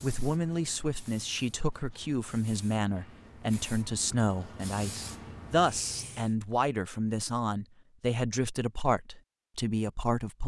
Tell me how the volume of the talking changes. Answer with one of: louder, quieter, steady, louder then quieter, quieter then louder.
steady.